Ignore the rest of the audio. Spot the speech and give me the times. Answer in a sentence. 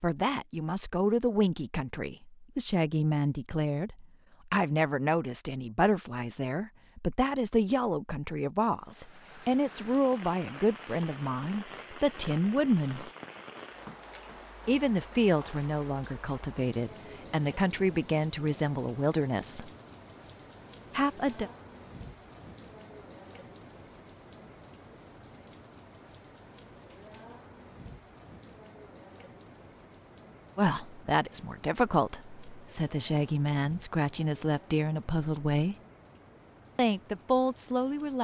You can hear the speech from 0.0 to 13.1 s, from 14.7 to 19.7 s, from 20.9 to 21.5 s, from 30.6 to 35.8 s and from 36.8 to 38.1 s.